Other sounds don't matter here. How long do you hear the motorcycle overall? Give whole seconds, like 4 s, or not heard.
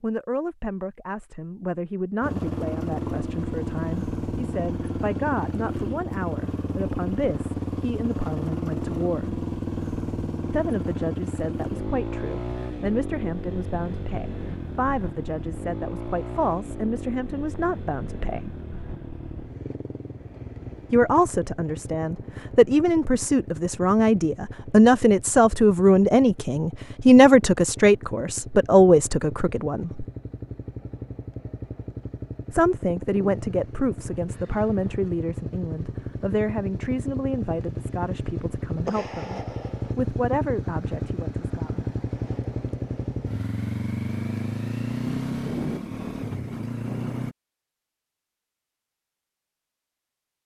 45 s.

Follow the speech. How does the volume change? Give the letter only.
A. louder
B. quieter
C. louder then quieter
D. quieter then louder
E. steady
C.